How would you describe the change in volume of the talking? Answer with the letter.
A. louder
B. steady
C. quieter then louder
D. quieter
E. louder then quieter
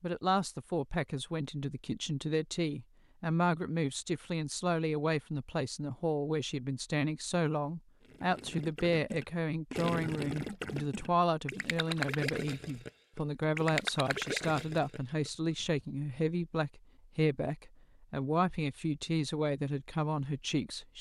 B.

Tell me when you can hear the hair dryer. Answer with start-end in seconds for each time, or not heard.
not heard.